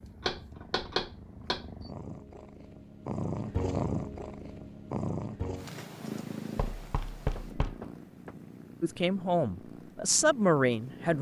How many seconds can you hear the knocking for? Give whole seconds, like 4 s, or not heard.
3 s.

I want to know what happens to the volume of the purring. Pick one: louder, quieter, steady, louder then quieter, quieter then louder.
louder then quieter.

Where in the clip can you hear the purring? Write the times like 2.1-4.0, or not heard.
0.0-11.1.